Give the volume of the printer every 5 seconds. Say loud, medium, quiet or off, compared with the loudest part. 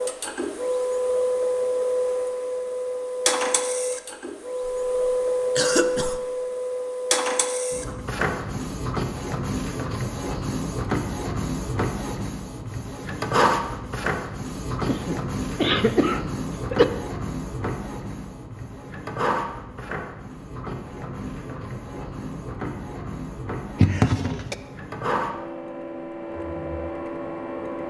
loud, loud, loud, medium, medium, medium.